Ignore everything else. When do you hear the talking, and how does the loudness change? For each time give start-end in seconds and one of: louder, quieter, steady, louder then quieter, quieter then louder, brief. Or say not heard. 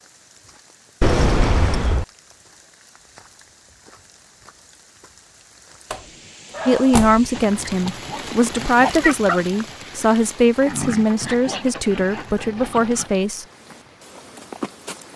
6.7-13.4 steady.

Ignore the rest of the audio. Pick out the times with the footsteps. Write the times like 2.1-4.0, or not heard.
13.5-15.1.